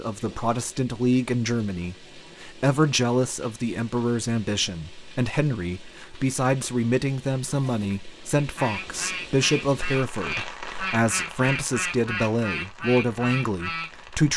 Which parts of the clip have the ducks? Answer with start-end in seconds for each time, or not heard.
7.4-13.9.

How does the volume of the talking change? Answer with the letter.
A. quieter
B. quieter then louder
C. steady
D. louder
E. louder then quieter
C.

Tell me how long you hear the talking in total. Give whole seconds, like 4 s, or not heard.
14 s.